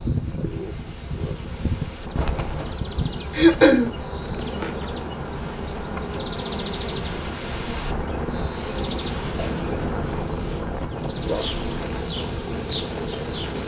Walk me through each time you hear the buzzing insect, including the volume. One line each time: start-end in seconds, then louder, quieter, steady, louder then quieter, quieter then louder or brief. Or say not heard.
0.0-13.6 steady.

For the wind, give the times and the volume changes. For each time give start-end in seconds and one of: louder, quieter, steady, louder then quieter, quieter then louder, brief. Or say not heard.
0.0-13.6 louder.